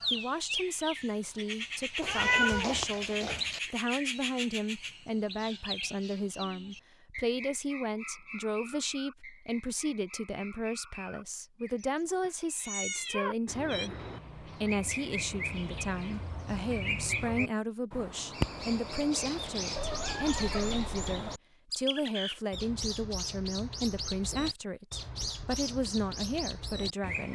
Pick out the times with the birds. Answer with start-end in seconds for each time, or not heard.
0.0-27.3.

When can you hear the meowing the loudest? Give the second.
2 s.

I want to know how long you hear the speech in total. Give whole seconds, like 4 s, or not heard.
27 s.